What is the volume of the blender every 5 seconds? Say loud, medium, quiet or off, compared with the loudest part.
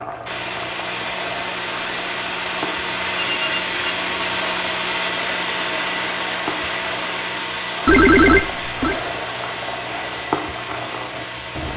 loud, loud, medium.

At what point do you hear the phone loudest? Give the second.
8 s.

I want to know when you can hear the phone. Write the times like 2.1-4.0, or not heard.
3.1-4.0, 7.8-9.0.